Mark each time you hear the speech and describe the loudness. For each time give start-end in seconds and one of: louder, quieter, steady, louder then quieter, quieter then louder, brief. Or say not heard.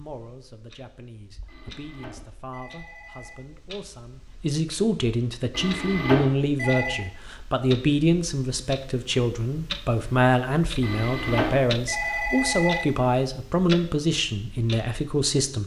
0.0-15.6 louder.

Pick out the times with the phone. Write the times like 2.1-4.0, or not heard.
1.4-3.5, 5.5-7.0, 10.8-12.8.